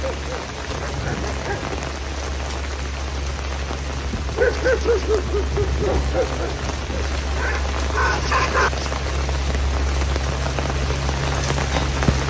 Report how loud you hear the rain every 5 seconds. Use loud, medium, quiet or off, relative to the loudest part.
medium, medium, loud.